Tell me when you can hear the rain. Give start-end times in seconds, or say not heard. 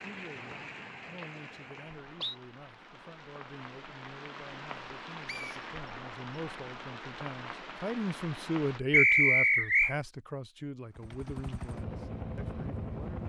0.0-8.8.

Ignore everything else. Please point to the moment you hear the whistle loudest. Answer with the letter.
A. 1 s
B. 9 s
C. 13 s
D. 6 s
B.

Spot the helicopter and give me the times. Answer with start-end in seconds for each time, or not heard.
10.8-13.2.